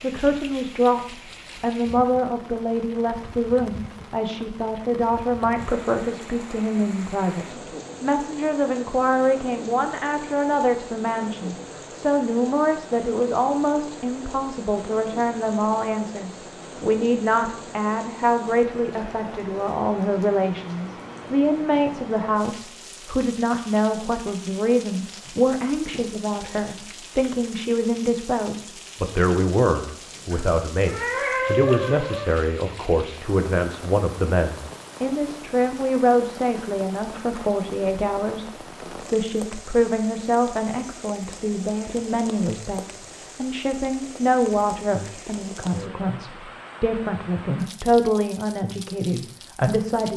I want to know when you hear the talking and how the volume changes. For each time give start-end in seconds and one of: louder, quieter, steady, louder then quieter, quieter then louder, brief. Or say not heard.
0.0-50.1 steady.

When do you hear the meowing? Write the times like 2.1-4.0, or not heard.
30.3-32.3.